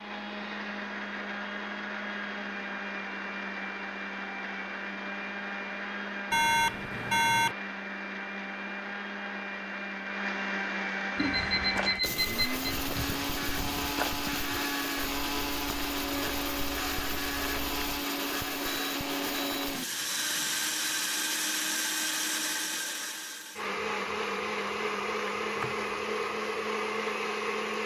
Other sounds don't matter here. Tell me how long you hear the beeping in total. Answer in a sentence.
The beeping can be heard for 5 seconds in total.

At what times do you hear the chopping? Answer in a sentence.
The chopping can be heard from 25.6 to 26.1 s.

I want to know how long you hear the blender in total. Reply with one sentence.
You can hear the blender for 28 seconds altogether.